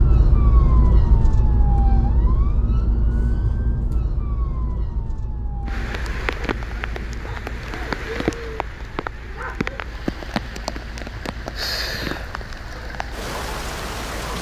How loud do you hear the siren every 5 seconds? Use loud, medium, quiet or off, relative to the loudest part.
loud, quiet, quiet.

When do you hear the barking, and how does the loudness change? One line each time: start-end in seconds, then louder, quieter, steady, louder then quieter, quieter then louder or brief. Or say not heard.
not heard.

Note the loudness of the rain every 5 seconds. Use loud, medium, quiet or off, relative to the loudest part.
off, loud, loud.